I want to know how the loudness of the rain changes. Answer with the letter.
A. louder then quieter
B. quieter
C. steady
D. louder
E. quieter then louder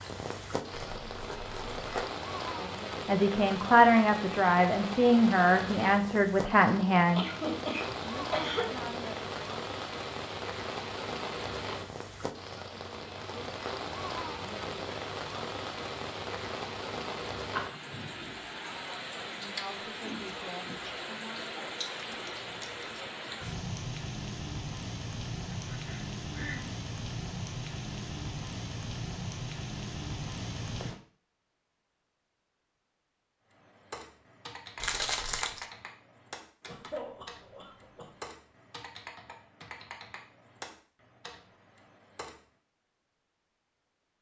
C.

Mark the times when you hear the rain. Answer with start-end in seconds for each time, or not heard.
0.0-31.0.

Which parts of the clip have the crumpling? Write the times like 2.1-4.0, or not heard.
0.8-2.1, 21.9-22.9, 34.8-35.6.